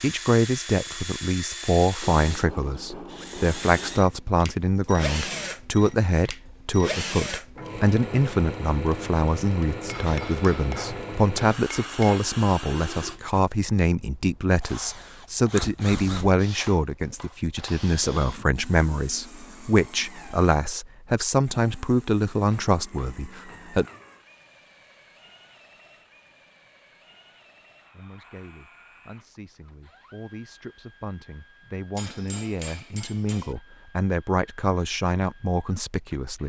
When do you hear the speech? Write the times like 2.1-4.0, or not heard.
0.0-23.9, 27.9-36.4.